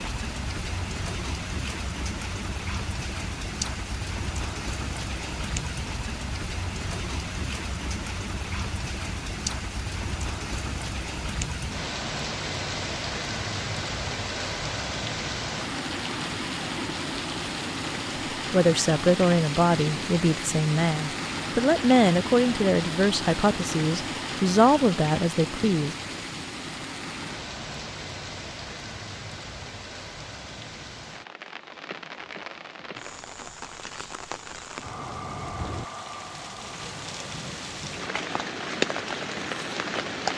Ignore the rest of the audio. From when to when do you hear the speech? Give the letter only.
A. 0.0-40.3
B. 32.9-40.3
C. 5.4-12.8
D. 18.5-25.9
D.